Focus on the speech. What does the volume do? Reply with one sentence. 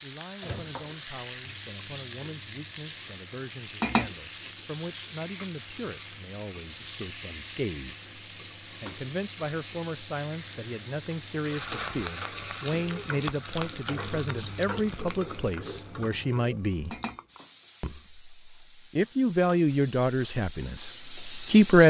The loudness of the speech goes up.